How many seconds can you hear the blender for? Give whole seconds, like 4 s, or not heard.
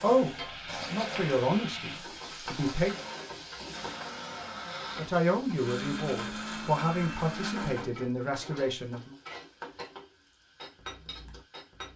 8 s.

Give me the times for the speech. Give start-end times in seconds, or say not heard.
0.0-3.0, 5.0-9.2.